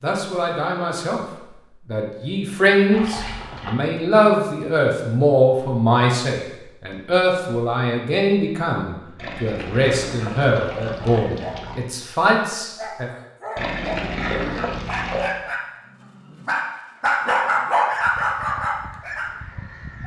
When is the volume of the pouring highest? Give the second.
14 s.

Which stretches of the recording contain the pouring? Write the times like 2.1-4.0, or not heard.
2.9-3.8, 9.2-11.8, 13.6-15.3.